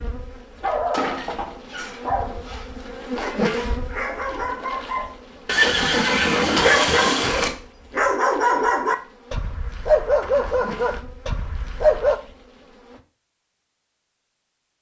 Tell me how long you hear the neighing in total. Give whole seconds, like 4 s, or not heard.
2 s.